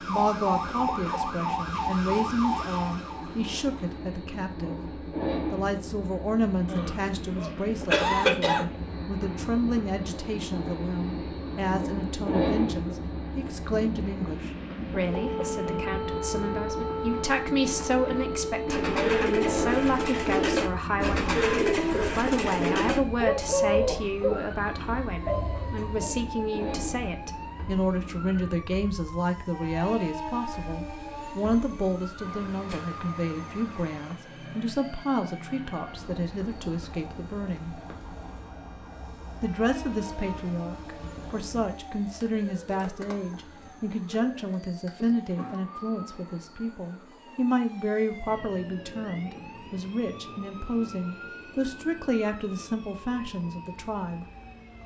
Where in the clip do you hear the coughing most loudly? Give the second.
8 s.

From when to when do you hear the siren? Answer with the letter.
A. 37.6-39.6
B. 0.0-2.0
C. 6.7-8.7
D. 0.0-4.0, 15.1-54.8
D.